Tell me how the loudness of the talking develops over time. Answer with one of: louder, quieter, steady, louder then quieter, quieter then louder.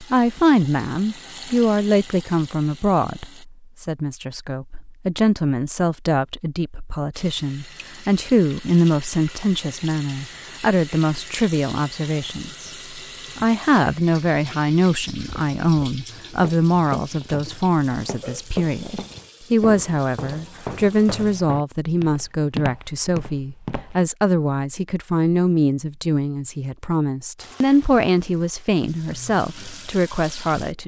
steady.